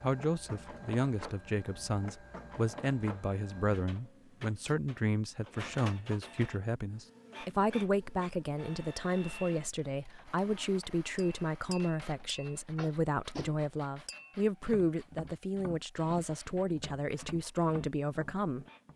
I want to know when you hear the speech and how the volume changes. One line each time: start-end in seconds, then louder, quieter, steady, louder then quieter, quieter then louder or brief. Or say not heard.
0.0-18.6 steady.